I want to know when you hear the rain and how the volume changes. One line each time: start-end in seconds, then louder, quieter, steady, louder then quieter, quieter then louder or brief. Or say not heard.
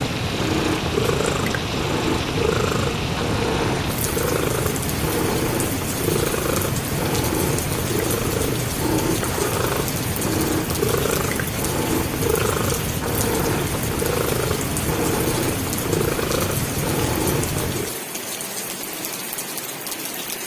0.0-20.4 steady.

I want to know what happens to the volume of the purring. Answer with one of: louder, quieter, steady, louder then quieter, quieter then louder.
steady.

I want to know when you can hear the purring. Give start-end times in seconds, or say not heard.
0.0-17.9.